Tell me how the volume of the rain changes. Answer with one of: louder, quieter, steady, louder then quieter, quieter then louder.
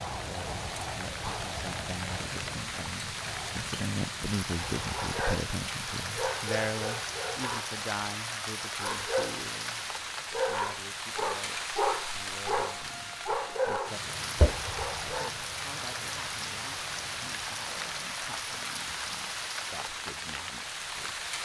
steady.